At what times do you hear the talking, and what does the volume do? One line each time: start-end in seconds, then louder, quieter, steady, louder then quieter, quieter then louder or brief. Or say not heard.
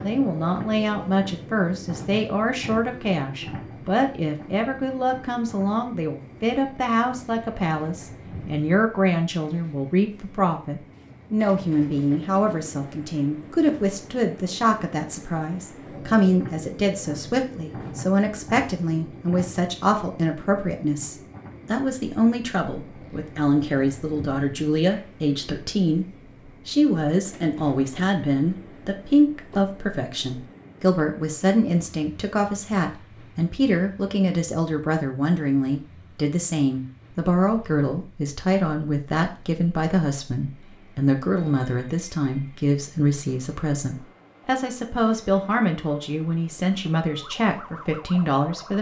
0.0-48.7 steady.